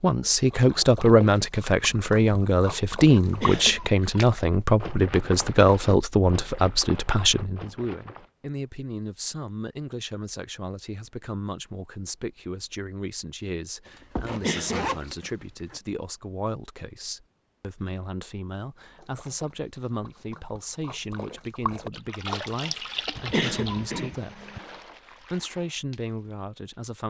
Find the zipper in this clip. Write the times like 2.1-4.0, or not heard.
13.8-15.8.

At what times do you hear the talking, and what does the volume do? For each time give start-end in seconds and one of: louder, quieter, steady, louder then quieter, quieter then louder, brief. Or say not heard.
0.0-24.5 quieter
25.2-27.0 brief.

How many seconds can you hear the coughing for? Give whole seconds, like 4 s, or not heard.
3 s.